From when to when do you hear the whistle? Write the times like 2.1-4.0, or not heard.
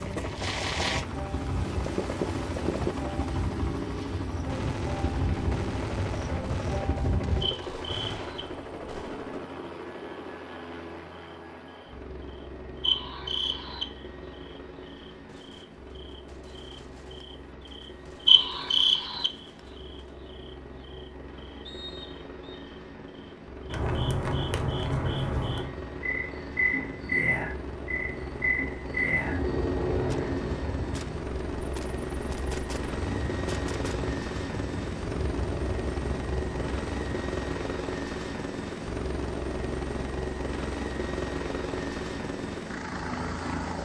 21.6-22.6.